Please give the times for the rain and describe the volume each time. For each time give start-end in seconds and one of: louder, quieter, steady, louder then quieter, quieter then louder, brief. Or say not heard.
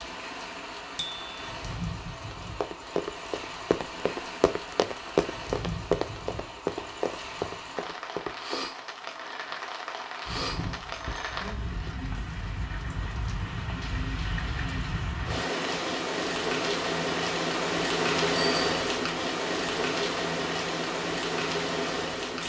0.0-22.4 louder.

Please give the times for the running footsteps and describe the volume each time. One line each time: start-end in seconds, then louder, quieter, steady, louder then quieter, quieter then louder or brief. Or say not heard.
2.6-8.7 louder then quieter.